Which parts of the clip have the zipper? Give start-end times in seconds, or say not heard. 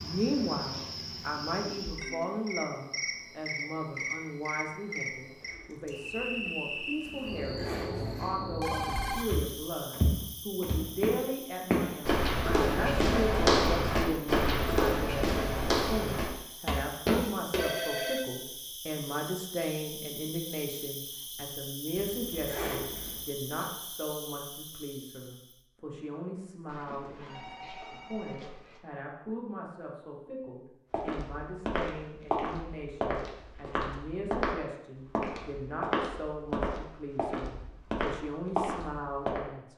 7.0-8.2, 21.9-23.2.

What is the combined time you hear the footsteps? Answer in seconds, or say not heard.
16 s.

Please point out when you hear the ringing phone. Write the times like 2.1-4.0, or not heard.
8.4-9.2, 17.6-18.2, 26.6-28.8.